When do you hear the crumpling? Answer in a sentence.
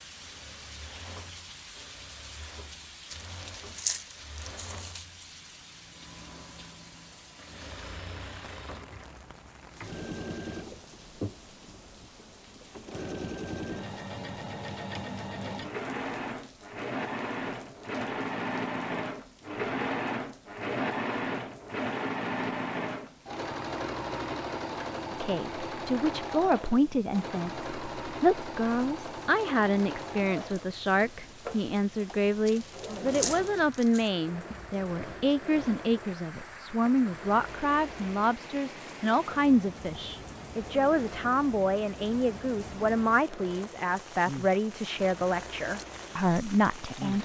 You can hear the crumpling from 3.1 to 5.0 s and from 32.5 to 34.1 s.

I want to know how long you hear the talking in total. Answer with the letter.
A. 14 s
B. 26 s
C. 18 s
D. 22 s
D.